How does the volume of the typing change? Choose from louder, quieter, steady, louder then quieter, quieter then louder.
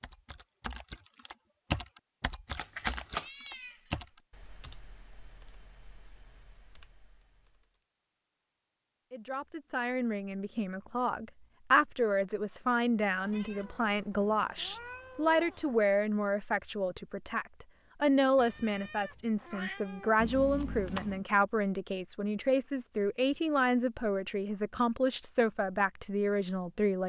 quieter.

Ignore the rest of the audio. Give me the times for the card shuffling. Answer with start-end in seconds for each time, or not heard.
2.5-3.3, 20.1-21.2.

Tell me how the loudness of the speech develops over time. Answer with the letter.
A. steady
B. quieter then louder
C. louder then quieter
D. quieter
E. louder
A.